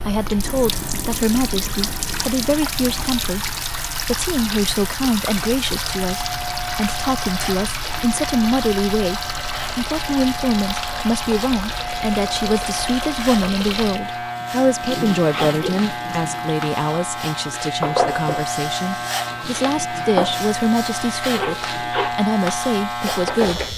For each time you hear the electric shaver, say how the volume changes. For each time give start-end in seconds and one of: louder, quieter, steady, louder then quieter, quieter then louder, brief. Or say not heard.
0.0-23.7 louder.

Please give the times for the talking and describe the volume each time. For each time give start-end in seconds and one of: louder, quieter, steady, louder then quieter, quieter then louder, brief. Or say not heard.
0.0-23.7 steady.